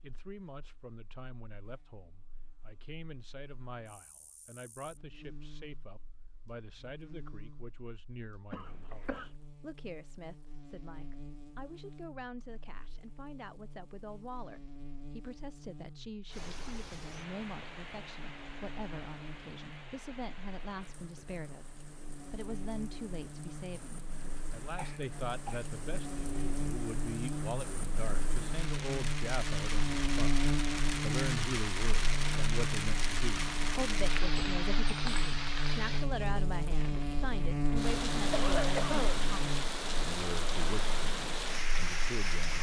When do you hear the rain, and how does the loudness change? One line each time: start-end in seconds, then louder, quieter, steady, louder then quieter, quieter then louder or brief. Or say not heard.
16.2-42.5 louder.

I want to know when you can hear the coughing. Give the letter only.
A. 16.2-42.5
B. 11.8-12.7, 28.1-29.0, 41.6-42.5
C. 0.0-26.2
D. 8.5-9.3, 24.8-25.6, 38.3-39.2
D.